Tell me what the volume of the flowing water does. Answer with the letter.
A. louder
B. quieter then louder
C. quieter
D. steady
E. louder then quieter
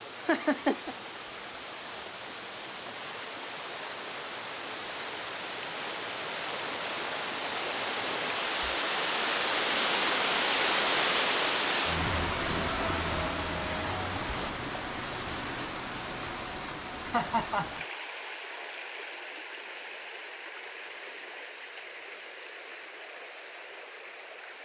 E.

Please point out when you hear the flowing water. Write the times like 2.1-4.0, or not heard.
0.0-24.6.